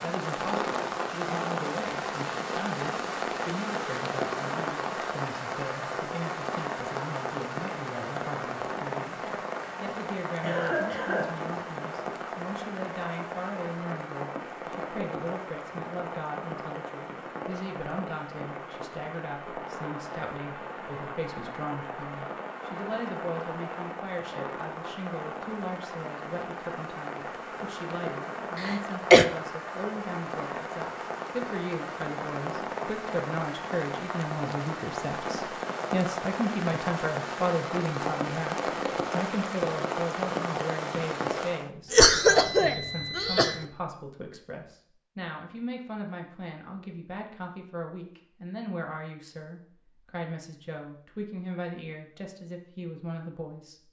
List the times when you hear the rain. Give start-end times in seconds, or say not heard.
0.0-41.7.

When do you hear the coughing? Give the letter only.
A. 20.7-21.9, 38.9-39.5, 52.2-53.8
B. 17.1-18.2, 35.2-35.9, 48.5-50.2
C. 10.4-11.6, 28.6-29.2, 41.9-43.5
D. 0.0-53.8
C.